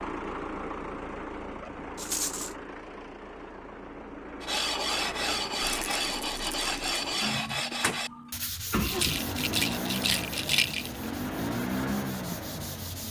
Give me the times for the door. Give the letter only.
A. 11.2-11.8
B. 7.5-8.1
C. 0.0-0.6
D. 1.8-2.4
B.